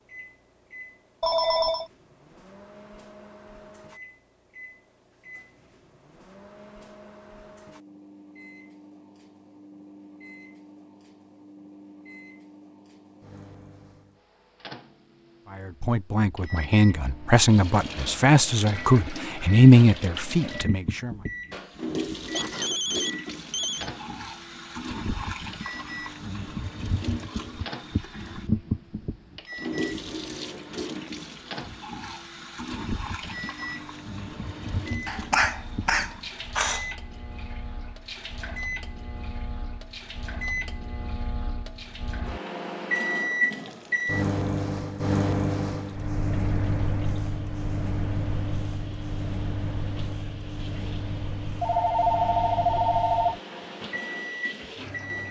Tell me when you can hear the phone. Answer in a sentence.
You can hear the phone from 1.2 to 1.9 s, from 22.4 to 23.9 s and from 51.6 to 53.4 s.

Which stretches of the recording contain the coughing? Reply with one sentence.
The coughing can be heard from 22.3 to 23.9 s and from 35.0 to 36.9 s.